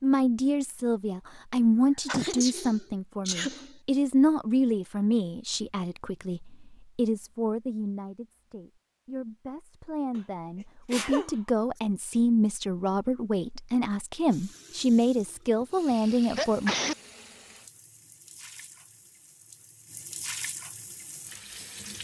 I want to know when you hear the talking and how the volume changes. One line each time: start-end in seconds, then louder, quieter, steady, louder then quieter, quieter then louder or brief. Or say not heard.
0.0-16.8 quieter then louder.